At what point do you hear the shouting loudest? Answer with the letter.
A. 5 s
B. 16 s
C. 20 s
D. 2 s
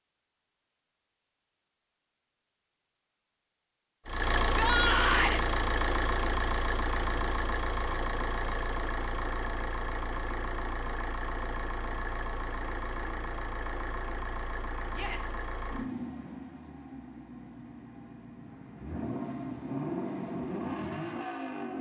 A.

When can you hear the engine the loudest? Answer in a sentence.
The loudest moment of the engine is at 5 seconds.